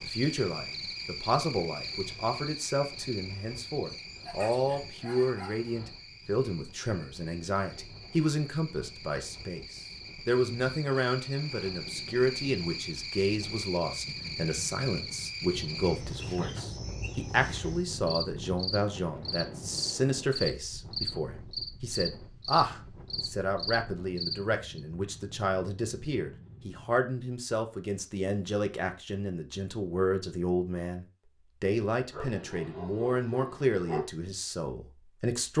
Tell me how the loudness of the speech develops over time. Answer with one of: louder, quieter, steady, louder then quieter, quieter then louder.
steady.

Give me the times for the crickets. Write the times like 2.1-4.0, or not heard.
0.0-24.6.